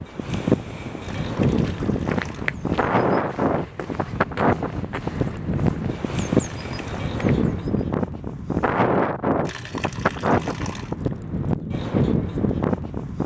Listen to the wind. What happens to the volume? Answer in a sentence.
The volume of the wind stays about the same.